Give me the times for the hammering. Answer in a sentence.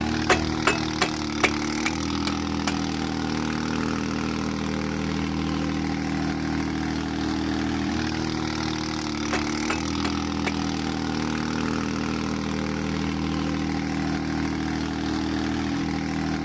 You can hear the hammering from 0.1 to 2.8 s and from 9.2 to 10.6 s.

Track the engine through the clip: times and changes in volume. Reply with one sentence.
You can hear the engine from 0.0 to 16.3 s, at a steady volume.